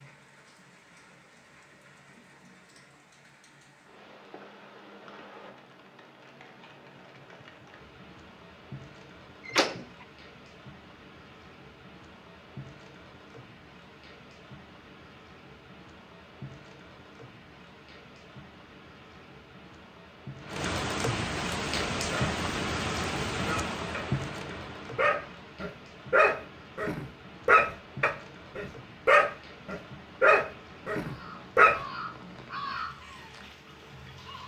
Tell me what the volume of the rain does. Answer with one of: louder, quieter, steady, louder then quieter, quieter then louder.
louder then quieter.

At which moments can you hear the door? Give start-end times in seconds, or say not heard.
9.4-10.1.